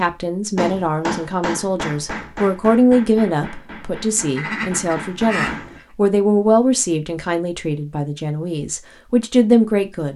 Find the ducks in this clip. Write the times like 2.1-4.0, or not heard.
4.2-5.8.